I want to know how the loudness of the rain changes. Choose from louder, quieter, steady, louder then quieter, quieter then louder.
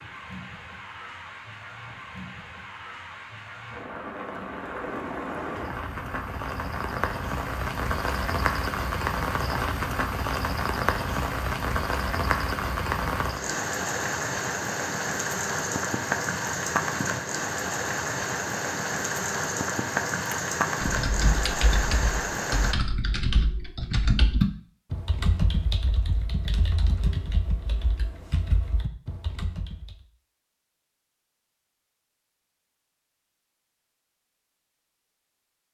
louder.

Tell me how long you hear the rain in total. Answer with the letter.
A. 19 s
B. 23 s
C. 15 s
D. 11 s
B.